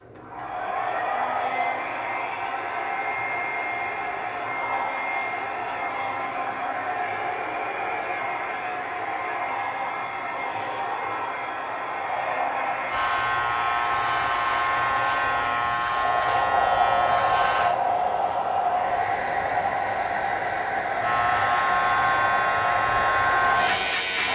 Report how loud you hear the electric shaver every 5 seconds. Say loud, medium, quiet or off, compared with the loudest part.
off, off, loud, loud, loud.